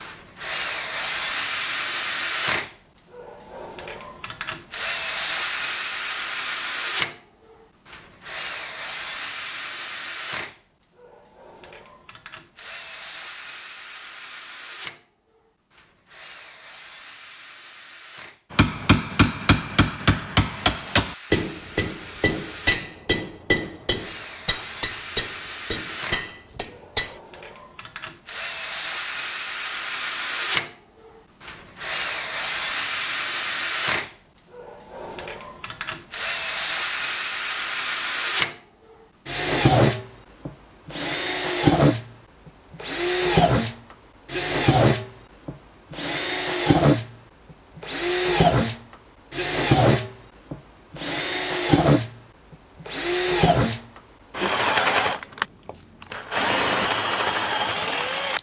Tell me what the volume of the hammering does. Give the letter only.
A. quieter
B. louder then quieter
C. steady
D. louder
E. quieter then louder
A.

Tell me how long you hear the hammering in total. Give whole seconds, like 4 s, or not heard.
9 s.